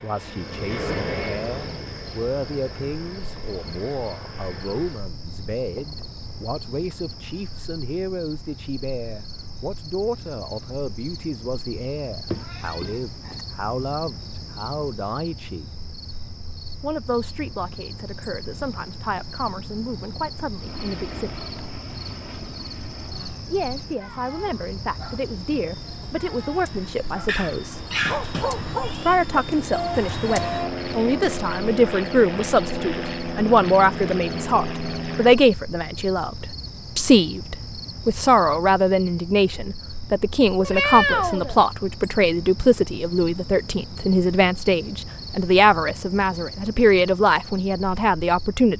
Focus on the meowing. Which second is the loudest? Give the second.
41 s.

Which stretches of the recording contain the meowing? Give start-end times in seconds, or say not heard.
12.2-13.4, 27.2-29.1, 40.6-41.6.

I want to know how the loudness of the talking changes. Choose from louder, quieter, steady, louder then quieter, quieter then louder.
louder.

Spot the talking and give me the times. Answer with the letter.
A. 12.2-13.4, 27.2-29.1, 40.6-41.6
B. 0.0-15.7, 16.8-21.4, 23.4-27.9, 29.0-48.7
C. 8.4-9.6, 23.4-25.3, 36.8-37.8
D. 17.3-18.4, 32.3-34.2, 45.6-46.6
B.